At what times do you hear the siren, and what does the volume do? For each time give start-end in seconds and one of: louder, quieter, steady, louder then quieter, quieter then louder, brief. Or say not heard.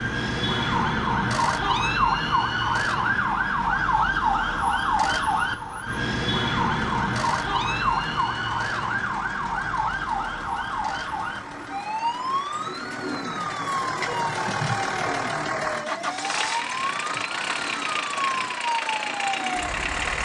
0.0-20.2 quieter.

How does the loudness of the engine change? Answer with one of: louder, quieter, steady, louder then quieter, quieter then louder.
louder.